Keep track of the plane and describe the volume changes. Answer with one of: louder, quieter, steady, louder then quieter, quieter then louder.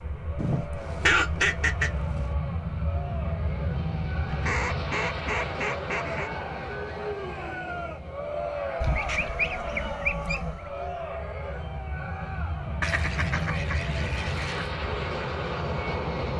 quieter then louder.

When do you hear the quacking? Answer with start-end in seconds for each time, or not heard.
0.3-2.3, 4.2-6.3, 8.8-10.7, 12.8-14.7.